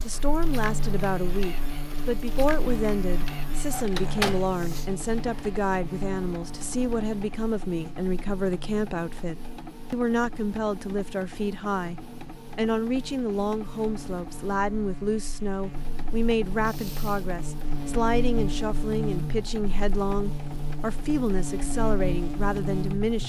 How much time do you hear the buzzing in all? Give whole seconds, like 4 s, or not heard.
23 s.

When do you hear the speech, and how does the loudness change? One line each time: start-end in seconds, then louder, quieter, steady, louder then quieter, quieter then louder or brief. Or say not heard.
0.0-23.2 steady.